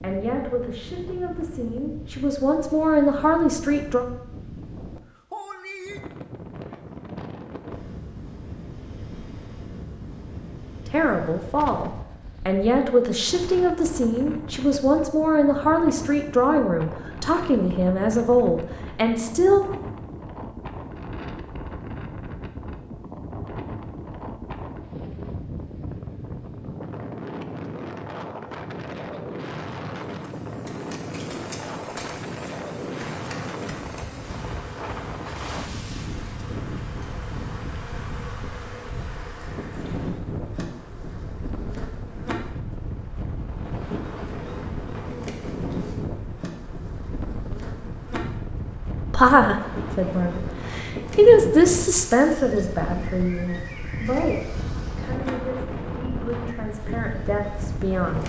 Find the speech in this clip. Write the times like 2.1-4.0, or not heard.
0.0-4.0, 10.8-19.7, 49.1-58.2.